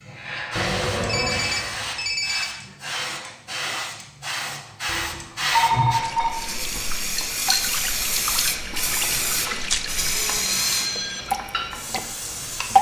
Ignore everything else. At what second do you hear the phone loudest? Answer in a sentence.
The loudest moment of the phone is at 6 seconds.